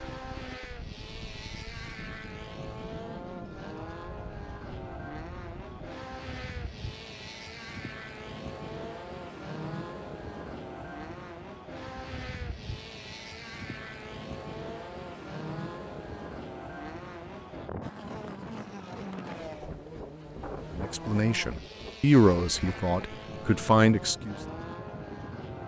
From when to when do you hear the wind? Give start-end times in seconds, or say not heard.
0.0-25.6.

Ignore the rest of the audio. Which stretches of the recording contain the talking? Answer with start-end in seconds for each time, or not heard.
20.8-24.4.